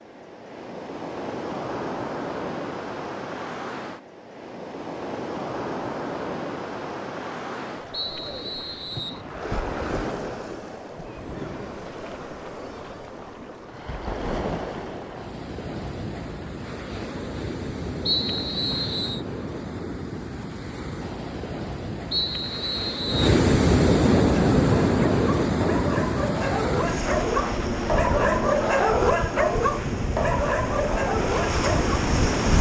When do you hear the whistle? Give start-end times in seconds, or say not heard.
7.9-9.2, 18.1-19.2, 22.1-23.4.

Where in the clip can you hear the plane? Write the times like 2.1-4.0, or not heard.
27.1-32.5.